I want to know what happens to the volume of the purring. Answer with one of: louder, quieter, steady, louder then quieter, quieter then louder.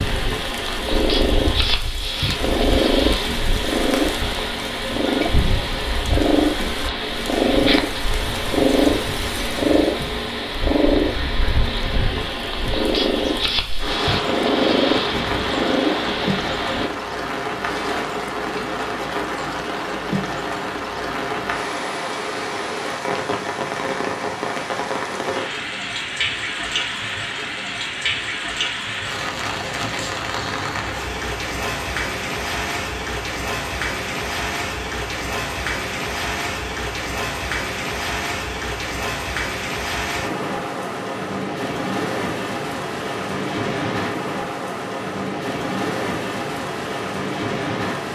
steady.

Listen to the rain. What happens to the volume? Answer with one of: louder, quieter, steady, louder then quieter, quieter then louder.
louder.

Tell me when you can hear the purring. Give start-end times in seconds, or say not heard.
0.0-16.9.